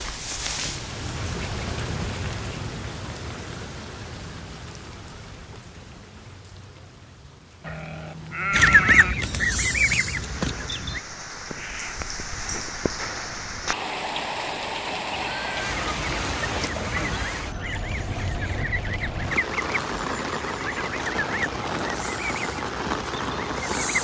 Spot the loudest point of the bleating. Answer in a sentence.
The volume of the bleating peaks at 9 seconds.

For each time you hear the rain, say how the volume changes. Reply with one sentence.
You can hear the rain from 0.0 to 23.9 s, getting quieter then louder.